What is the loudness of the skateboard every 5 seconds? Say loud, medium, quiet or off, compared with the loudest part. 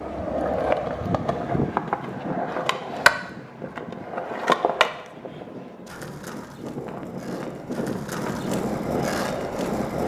loud, medium.